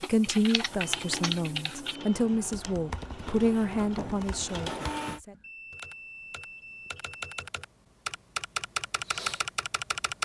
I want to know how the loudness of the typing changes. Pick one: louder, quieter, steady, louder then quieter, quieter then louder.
quieter then louder.